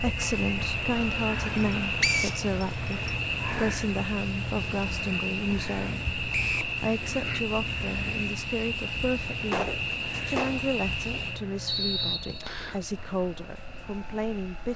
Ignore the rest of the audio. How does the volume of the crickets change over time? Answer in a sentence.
The volume of the crickets goes down.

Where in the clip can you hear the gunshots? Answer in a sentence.
You can hear the gunshots from 9.4 to 11.2 s.